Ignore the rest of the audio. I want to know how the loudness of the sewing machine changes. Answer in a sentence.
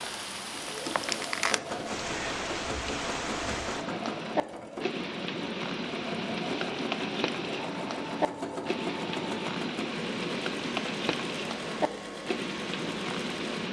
The volume of the sewing machine stays about the same.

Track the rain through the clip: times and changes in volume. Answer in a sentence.
You can hear the rain from 0.0 to 13.6 s, at a steady volume.